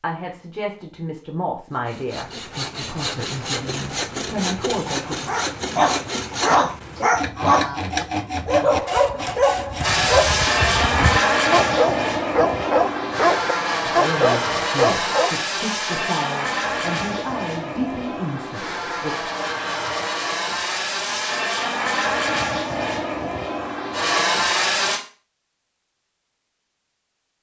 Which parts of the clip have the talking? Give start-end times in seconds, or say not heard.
0.0-5.3, 13.8-19.3.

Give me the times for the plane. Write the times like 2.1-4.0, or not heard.
9.8-25.0.